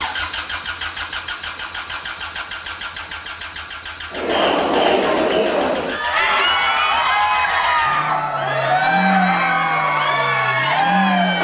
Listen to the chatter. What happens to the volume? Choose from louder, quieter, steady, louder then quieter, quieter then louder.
steady.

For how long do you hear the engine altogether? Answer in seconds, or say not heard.
11 s.